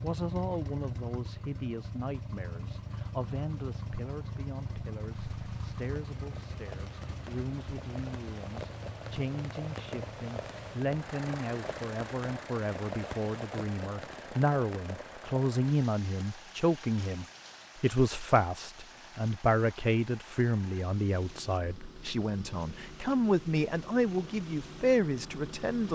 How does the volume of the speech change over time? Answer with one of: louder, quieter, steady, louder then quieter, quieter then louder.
louder.